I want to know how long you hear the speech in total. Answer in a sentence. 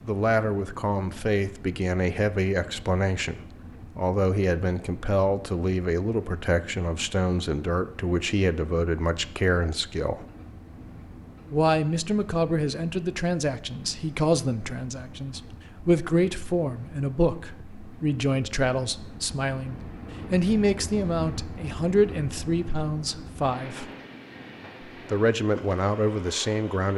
You can hear the speech for 25 seconds altogether.